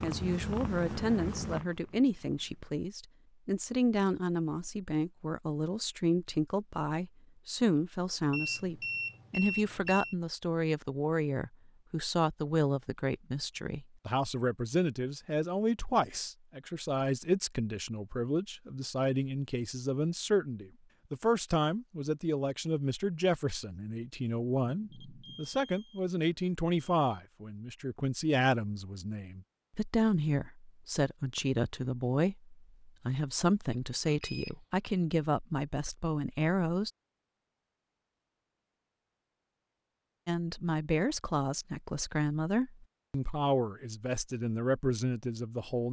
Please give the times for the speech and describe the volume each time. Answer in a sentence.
The speech can be heard from 0.0 to 36.9 s, at a steady volume; and from 40.2 to 45.8 s, at a steady volume.